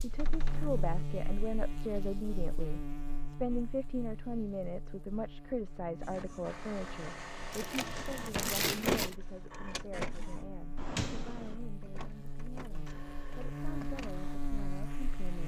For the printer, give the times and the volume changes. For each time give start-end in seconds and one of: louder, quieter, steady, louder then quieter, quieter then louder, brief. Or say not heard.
6.0-15.4 louder then quieter.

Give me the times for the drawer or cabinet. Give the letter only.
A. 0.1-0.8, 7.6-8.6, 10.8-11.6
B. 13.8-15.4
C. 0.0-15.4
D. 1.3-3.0
A.